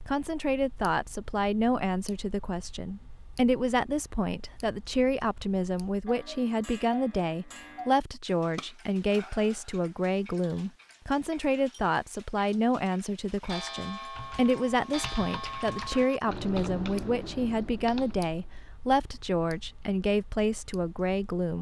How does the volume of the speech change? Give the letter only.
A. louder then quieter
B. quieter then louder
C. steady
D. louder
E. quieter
C.